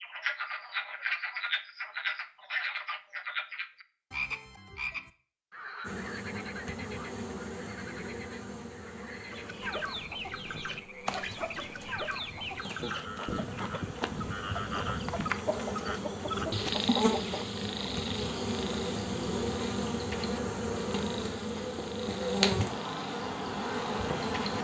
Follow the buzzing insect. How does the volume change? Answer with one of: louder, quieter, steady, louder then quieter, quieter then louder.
quieter then louder.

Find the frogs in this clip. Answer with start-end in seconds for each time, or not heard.
0.0-24.6.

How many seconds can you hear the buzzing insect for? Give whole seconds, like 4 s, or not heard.
19 s.